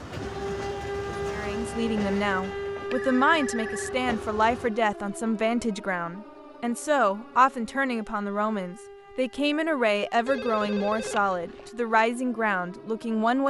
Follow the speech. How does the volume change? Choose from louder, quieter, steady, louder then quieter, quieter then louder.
steady.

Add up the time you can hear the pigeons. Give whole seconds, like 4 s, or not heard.
not heard.